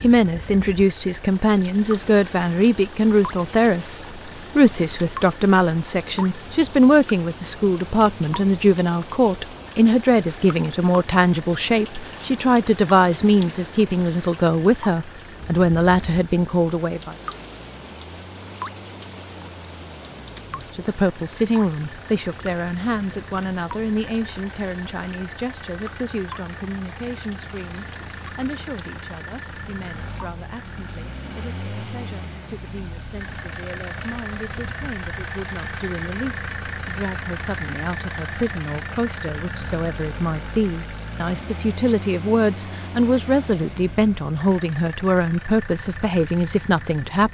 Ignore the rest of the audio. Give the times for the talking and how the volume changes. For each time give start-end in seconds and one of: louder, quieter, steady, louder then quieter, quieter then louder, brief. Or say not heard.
0.0-17.1 steady
20.6-47.2 quieter then louder.